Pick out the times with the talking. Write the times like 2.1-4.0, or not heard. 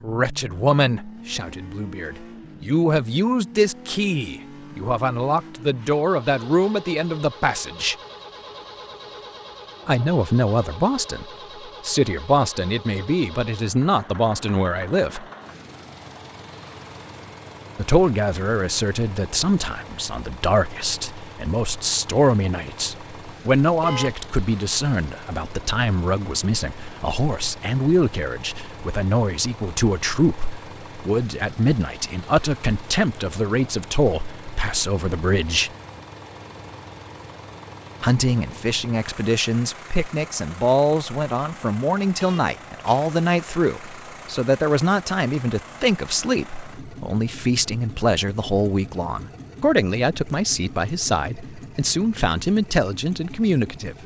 0.0-8.0, 9.8-15.2, 17.8-35.7, 38.0-54.0.